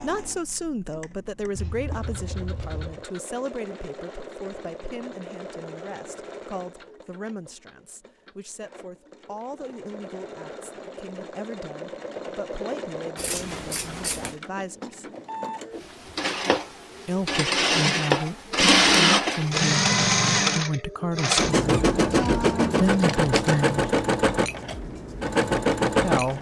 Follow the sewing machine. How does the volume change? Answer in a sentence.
The loudness of the sewing machine goes up.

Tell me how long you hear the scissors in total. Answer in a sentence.
The scissors can be heard for 4 seconds in total.